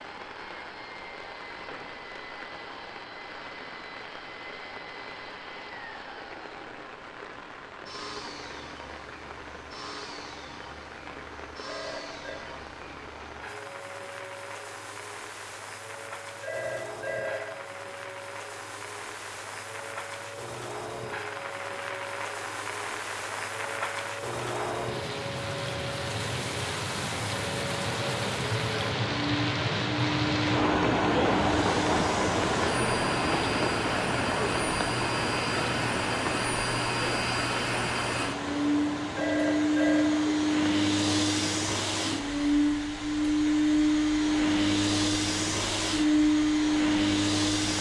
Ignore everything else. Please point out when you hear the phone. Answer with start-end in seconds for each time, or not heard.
11.7-12.4, 16.4-17.4, 39.1-40.0.